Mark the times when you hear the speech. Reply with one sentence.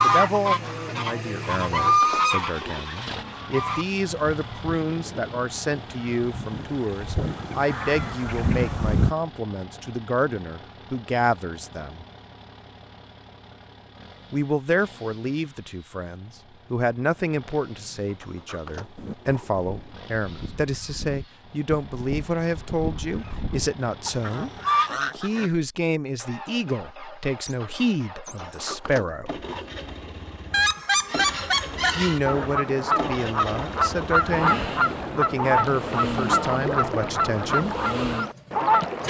You can hear the speech from 0.0 to 12.1 s, from 14.3 to 24.5 s, from 25.1 to 29.4 s and from 31.9 to 37.8 s.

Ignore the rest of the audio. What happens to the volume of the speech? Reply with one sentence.
The volume of the speech stays about the same.